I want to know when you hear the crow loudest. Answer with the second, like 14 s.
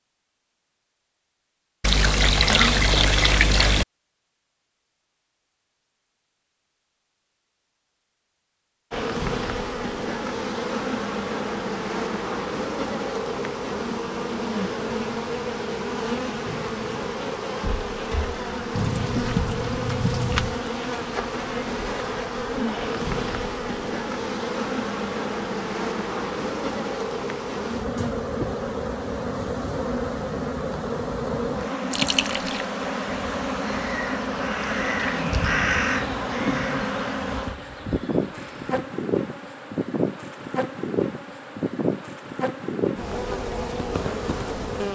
36 s.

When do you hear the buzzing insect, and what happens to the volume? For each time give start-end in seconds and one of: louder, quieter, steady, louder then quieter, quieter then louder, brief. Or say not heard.
8.9-44.9 steady.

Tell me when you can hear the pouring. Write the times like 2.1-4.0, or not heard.
1.8-3.9, 18.8-20.6, 31.9-32.6.